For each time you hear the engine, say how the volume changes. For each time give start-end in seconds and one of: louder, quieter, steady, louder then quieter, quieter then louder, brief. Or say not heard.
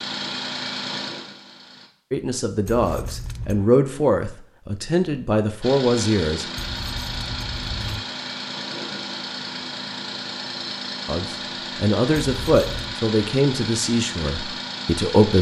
0.0-1.9 brief
5.6-15.3 steady.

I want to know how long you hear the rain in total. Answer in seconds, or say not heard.
not heard.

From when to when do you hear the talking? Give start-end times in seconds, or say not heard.
2.1-6.5, 11.1-15.3.